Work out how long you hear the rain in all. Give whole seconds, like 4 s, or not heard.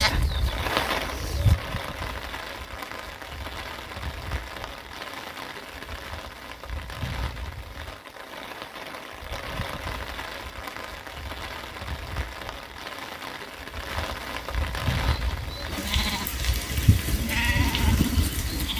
19 s.